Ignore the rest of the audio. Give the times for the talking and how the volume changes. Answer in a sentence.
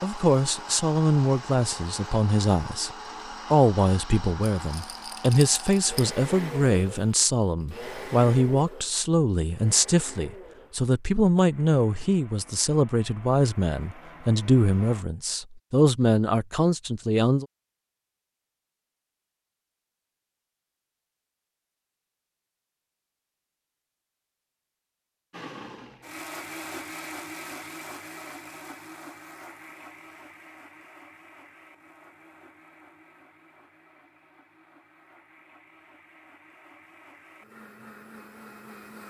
The talking can be heard from 0.0 to 17.4 s, at a steady volume.